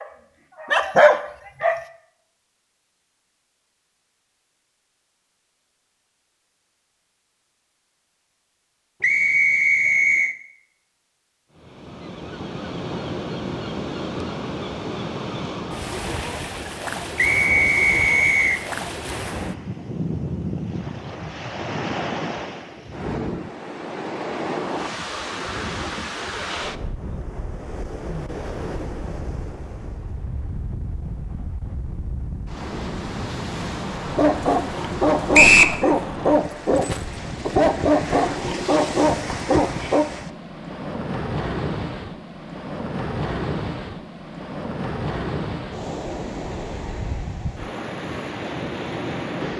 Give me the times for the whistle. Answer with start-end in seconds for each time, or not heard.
9.0-10.3, 17.1-18.6, 35.3-35.8.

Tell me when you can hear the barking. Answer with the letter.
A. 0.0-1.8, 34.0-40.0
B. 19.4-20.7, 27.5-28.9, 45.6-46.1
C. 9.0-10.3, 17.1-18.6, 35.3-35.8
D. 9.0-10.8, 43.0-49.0
A.